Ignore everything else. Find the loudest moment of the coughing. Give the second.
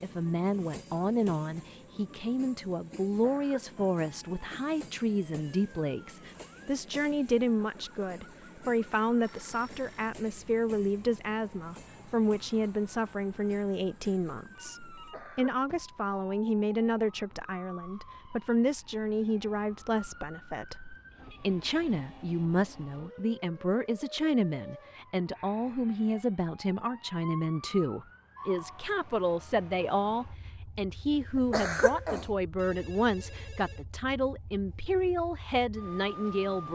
32 s.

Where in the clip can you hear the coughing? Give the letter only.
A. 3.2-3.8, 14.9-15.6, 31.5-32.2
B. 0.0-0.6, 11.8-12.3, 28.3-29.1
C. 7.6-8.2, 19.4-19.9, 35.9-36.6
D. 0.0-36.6
A.